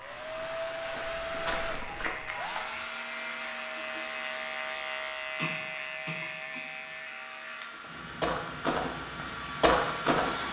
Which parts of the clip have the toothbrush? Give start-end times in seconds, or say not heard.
not heard.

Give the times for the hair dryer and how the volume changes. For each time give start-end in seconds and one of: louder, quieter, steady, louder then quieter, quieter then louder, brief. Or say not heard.
0.0-10.4 quieter then louder.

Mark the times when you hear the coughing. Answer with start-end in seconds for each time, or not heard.
2.2-2.8, 5.3-6.7.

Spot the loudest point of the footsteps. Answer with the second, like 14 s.
10 s.